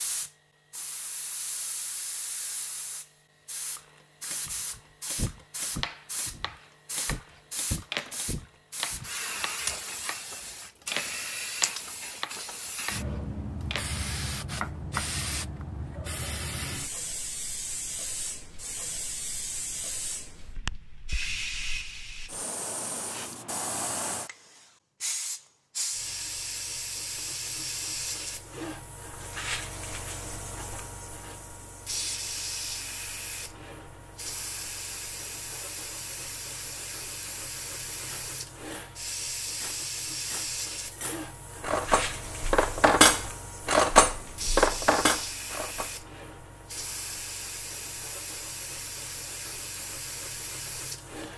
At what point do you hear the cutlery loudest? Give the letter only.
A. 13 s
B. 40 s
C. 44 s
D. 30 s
C.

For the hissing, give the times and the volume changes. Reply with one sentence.
You can hear the hissing from 0.0 to 51.3 s, at a steady volume.